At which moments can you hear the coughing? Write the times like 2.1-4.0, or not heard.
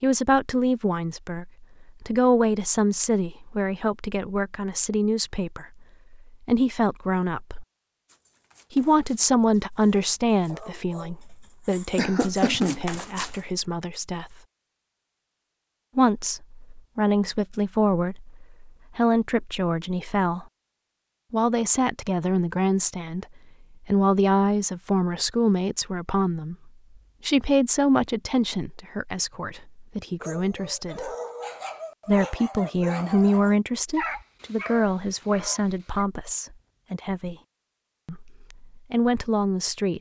11.9-12.8.